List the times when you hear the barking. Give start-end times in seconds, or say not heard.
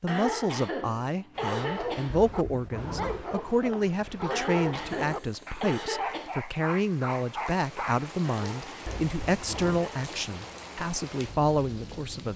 1.4-8.1.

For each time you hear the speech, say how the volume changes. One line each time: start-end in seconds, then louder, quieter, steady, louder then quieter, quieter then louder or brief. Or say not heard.
0.0-12.3 steady.